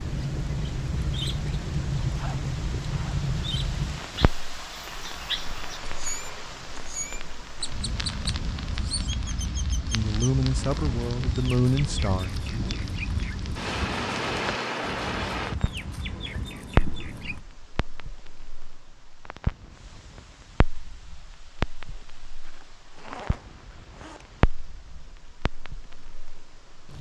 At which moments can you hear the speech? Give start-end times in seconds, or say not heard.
9.9-12.3.